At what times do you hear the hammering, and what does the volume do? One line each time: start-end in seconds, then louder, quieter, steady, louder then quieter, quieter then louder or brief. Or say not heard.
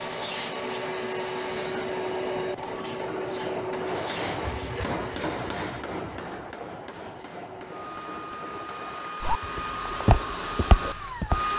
1.6-9.2 louder then quieter.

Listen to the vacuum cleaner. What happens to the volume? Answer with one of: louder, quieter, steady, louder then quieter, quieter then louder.
quieter then louder.